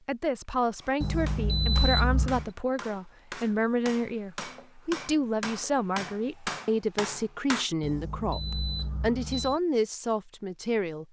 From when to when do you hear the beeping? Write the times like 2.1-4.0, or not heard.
1.0-2.5, 7.8-9.6.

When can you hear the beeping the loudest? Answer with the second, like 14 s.
2 s.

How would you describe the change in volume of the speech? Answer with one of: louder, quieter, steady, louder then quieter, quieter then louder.
steady.